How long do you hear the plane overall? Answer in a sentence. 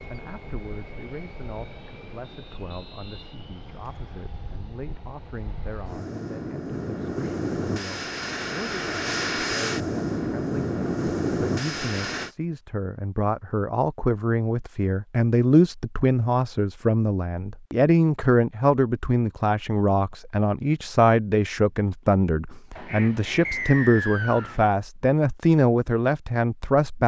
You can hear the plane for 12 seconds altogether.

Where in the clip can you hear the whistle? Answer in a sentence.
The whistle can be heard from 2.2 to 4.2 s and from 23.4 to 24.6 s.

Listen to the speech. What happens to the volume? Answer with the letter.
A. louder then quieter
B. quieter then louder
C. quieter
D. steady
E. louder
E.